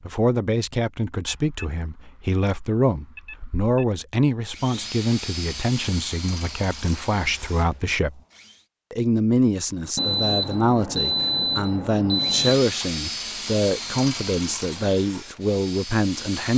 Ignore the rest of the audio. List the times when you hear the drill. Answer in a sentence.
The drill can be heard from 4.5 to 8.7 s and from 12.2 to 16.5 s.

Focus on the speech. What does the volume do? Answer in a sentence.
The volume of the speech stays about the same.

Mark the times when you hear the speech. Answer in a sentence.
The speech can be heard from 0.0 to 8.2 s and from 8.9 to 16.5 s.